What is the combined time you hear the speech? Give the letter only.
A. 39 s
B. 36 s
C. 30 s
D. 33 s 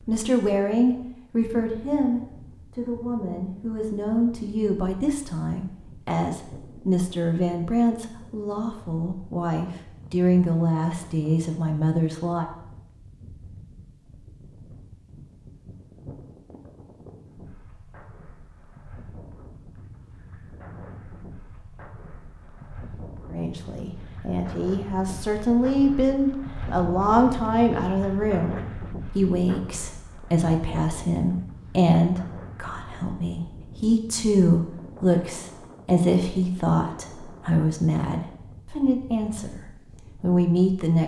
C.